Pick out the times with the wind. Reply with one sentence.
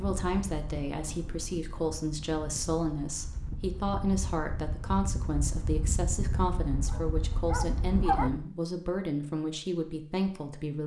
The wind can be heard from 0.0 to 8.4 s.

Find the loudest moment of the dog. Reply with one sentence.
The volume of the dog peaks at 8 seconds.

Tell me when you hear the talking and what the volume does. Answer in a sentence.
The talking can be heard from 0.0 to 10.8 s, at a steady volume.